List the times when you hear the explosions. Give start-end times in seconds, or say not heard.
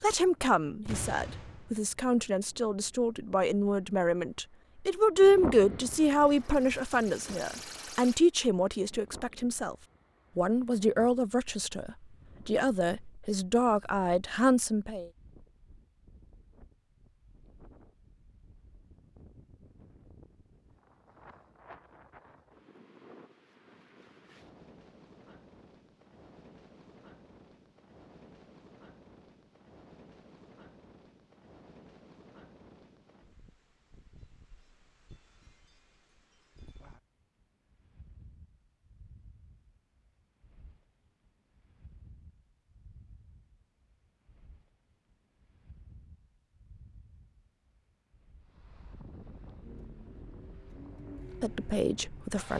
0.8-1.8.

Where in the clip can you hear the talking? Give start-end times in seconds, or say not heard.
0.0-9.8, 10.3-15.1, 51.4-52.5.